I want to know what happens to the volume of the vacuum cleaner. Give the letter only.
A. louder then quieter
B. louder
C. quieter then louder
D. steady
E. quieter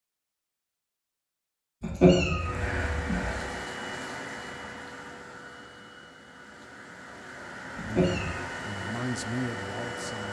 C.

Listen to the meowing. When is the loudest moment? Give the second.
2 s.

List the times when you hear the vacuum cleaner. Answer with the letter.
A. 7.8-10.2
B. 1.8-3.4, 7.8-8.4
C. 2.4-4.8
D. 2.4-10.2
D.